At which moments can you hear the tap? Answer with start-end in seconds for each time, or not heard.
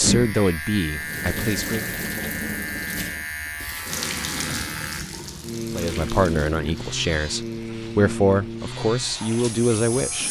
0.0-10.2.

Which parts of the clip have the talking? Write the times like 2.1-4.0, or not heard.
0.0-1.9, 5.7-10.2.